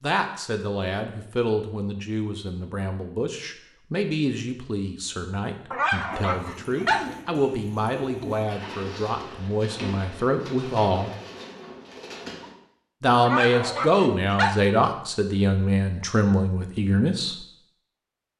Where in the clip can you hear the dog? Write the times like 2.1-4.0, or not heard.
5.7-7.2, 13.2-14.7.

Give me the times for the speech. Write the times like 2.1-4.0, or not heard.
0.0-11.1, 13.0-17.4.